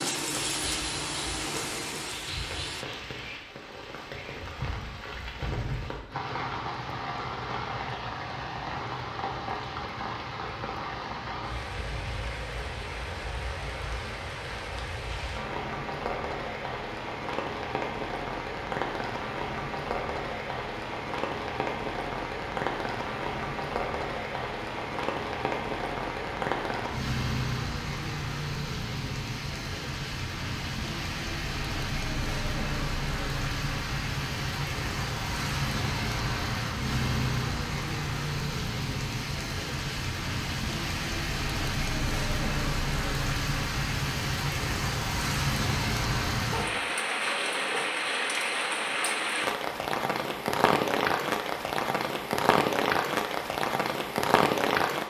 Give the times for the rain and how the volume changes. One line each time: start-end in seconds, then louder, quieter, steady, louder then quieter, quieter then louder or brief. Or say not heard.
0.0-55.0 louder.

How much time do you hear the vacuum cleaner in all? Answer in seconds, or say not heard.
3 s.